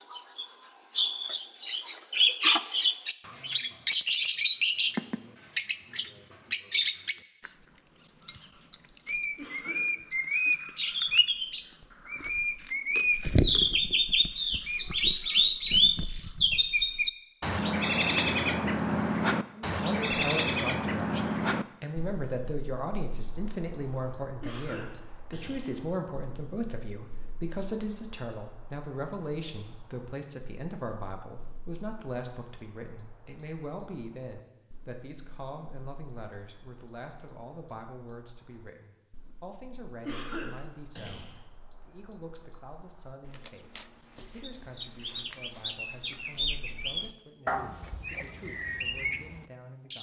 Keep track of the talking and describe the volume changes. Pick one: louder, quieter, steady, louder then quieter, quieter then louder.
quieter.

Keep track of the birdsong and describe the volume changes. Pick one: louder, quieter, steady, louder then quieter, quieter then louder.
quieter then louder.